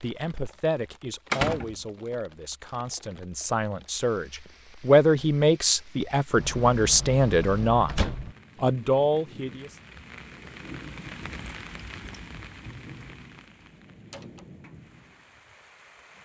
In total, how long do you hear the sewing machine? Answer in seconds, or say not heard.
not heard.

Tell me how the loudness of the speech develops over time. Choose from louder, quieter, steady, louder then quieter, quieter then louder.
louder.